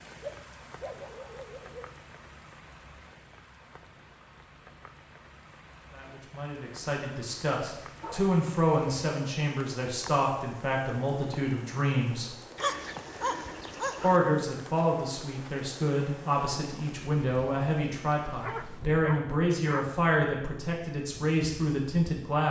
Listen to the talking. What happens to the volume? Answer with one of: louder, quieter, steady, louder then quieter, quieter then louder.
steady.